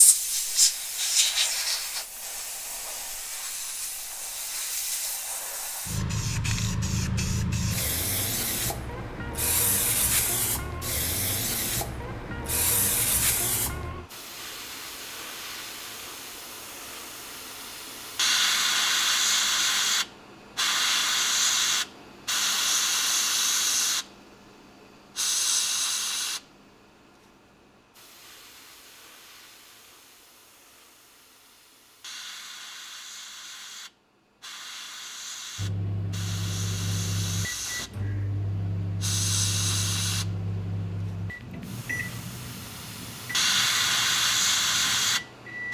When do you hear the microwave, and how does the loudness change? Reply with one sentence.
You can hear the microwave from 35.5 to 45.6 s, getting quieter.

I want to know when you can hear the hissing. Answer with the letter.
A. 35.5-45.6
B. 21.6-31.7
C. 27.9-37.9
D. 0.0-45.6
D.